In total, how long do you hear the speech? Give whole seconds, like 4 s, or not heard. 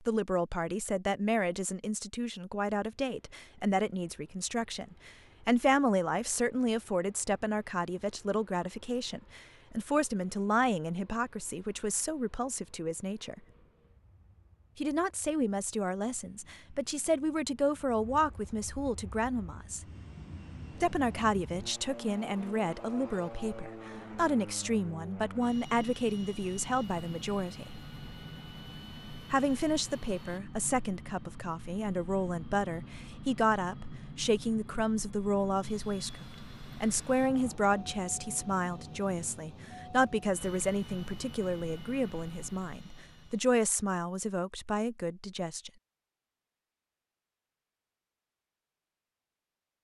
42 s.